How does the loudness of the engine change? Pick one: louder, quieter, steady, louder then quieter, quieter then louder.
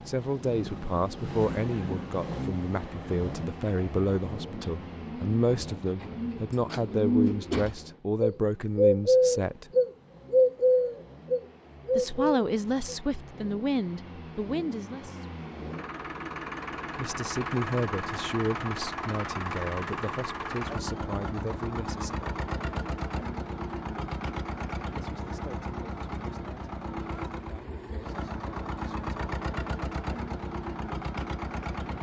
quieter then louder.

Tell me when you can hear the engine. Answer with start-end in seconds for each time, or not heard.
0.0-31.9.